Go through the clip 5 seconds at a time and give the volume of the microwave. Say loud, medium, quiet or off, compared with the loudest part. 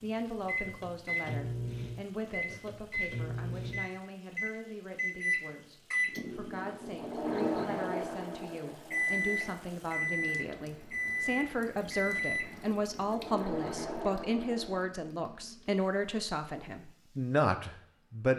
loud, loud, loud, off.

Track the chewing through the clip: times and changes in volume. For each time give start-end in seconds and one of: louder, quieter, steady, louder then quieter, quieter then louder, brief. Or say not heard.
not heard.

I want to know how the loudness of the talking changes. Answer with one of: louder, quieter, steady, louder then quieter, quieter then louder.
louder.